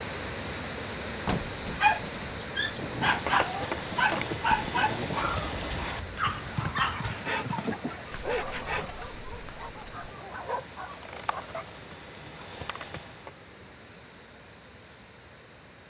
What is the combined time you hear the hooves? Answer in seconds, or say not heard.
10 s.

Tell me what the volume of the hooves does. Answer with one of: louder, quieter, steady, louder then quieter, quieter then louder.
quieter then louder.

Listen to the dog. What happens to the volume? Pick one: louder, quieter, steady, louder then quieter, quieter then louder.
quieter.